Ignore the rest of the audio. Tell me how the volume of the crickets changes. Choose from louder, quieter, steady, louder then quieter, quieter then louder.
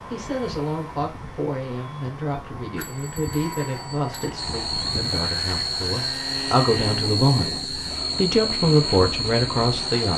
steady.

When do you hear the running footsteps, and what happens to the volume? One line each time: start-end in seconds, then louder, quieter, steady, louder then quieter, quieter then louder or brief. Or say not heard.
not heard.